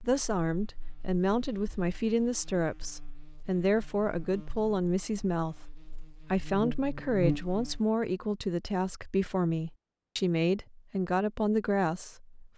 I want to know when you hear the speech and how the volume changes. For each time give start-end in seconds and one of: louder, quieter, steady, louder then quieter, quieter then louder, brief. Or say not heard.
0.0-12.4 steady.